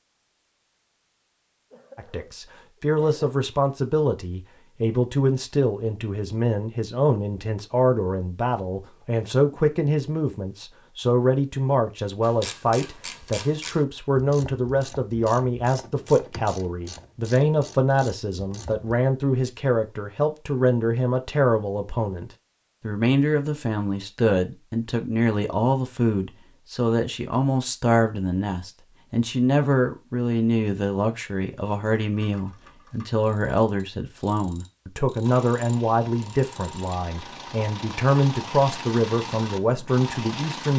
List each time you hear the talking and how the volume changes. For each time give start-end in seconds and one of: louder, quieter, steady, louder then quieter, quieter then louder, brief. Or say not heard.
1.9-40.7 steady.